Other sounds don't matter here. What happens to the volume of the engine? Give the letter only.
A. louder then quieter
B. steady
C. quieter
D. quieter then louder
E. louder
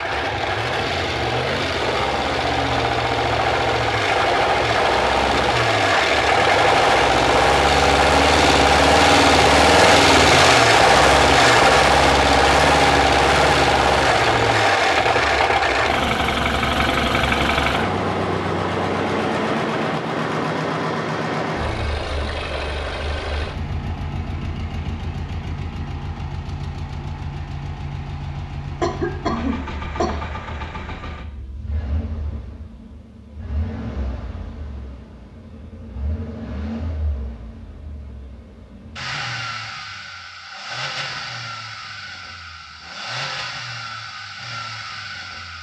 C.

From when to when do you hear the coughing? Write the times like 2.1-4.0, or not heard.
28.8-30.1.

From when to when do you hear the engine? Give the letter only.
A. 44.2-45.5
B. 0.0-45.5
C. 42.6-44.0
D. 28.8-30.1
B.